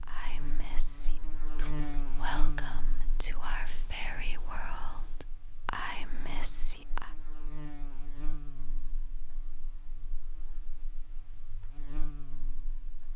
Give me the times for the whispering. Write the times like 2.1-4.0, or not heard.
0.0-7.1.